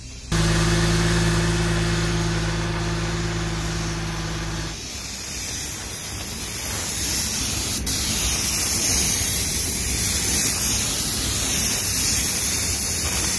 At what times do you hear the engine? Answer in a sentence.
The engine can be heard from 0.0 to 4.8 s.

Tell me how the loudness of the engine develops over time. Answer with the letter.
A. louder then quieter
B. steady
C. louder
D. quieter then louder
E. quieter
E.